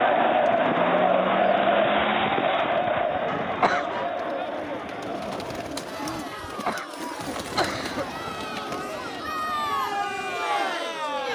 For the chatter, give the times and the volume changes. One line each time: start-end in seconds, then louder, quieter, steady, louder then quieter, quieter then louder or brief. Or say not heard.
0.0-11.3 quieter then louder.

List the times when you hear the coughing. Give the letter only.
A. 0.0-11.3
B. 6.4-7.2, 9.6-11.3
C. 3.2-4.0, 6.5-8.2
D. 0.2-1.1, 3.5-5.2
C.